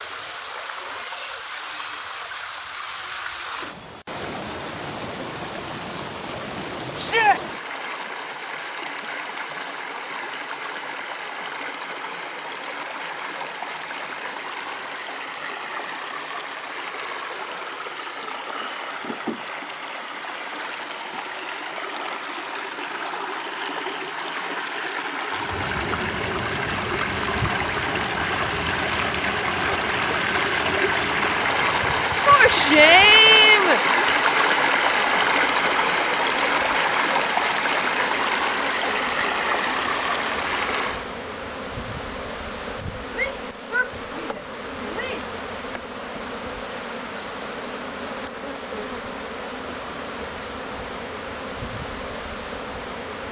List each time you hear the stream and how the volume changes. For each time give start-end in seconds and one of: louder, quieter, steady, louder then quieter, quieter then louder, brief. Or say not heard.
0.0-41.1 louder.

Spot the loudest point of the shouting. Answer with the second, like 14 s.
33 s.